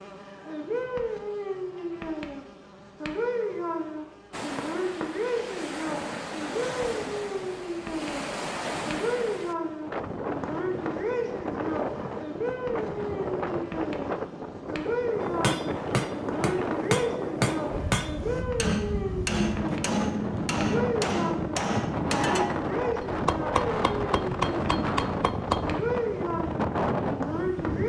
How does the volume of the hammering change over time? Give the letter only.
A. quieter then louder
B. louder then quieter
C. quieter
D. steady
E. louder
D.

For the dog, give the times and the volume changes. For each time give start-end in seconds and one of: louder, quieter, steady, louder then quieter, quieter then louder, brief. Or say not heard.
not heard.